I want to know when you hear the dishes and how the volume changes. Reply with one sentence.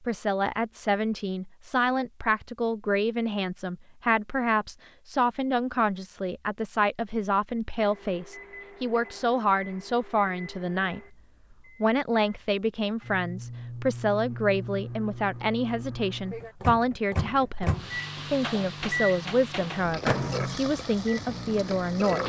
You can't hear the dishes here.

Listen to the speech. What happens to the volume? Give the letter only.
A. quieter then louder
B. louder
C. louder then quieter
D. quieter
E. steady
E.